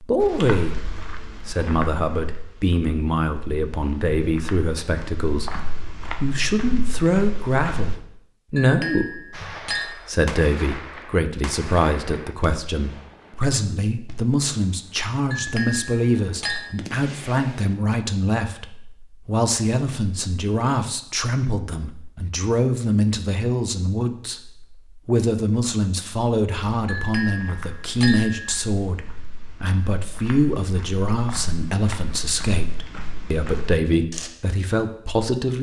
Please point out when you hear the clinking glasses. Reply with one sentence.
The clinking glasses can be heard from 8.6 to 9.9 s, from 15.3 to 16.7 s and from 26.9 to 28.6 s.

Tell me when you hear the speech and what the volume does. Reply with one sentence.
You can hear the speech from 0.0 to 35.5 s, at a steady volume.